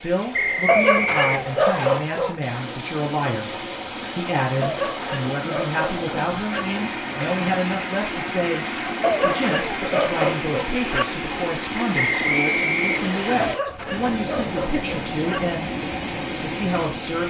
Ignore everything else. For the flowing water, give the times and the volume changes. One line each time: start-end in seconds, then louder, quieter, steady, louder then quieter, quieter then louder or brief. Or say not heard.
0.0-17.2 louder.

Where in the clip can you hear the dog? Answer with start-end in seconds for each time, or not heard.
0.7-2.4, 4.6-6.7, 9.0-11.1, 13.3-15.4.